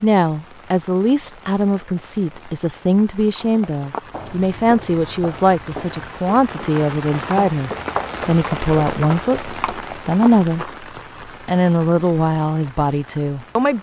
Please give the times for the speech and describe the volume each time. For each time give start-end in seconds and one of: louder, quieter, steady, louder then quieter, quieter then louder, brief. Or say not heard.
0.0-10.7 steady
11.4-13.7 brief.